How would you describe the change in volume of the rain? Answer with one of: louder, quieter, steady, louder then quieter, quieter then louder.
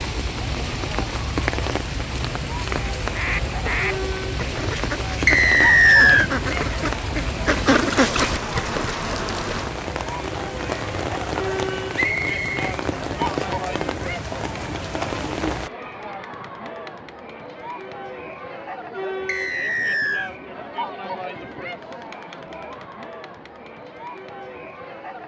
steady.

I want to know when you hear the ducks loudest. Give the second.
8 s.